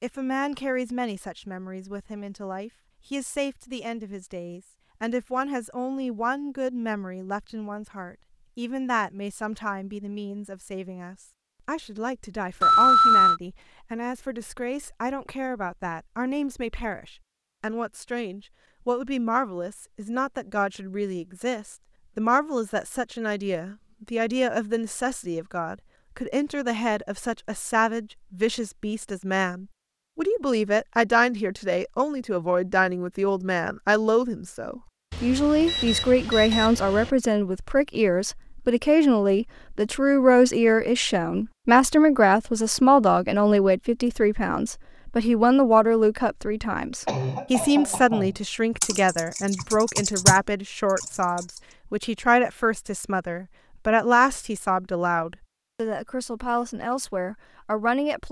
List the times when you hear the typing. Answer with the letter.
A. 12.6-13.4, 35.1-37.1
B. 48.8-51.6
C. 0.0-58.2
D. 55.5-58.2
B.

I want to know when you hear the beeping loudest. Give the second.
13 s.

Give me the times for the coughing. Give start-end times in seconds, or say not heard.
47.0-48.4.